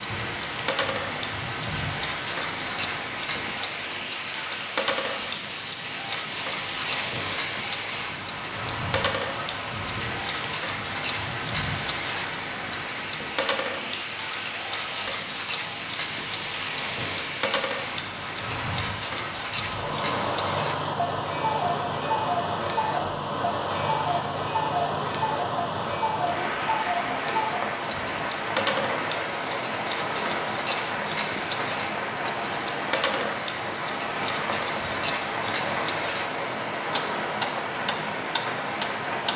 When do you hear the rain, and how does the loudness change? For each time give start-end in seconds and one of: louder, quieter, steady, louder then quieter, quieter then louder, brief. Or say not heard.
0.0-39.3 steady.